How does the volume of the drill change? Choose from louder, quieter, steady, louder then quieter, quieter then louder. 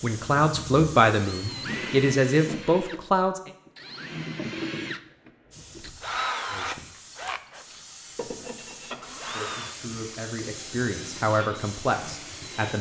quieter.